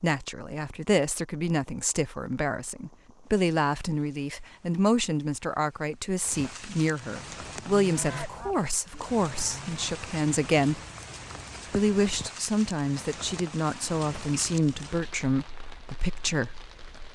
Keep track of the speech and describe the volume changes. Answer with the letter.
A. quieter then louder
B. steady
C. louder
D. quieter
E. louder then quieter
B.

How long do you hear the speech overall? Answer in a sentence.
The speech can be heard for 16 seconds in total.